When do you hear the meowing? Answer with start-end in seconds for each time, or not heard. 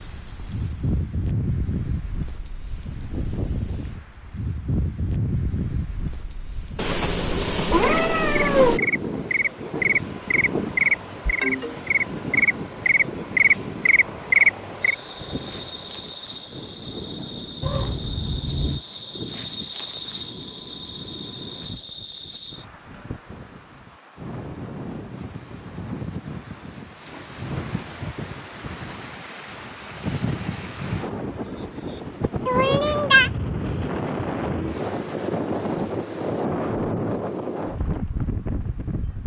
6.8-8.8, 17.6-18.8, 32.5-33.3.